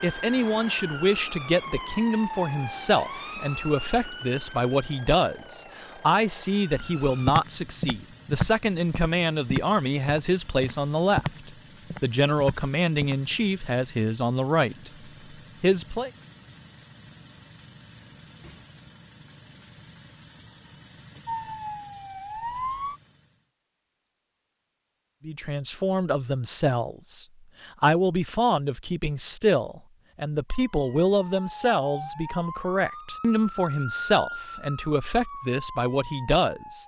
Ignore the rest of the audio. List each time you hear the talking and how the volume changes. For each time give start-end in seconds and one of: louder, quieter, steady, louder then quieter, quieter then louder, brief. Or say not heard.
0.0-14.9 steady
15.6-16.1 brief
25.2-36.8 steady.